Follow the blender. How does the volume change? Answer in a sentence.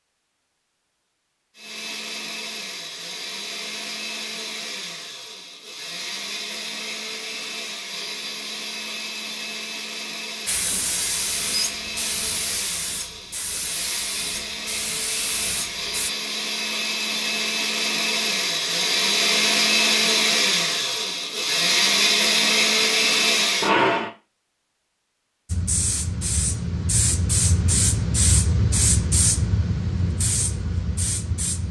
The loudness of the blender goes up.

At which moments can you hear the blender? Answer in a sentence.
The blender can be heard from 1.6 to 24.1 s.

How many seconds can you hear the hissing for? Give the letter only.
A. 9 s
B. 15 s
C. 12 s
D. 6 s
C.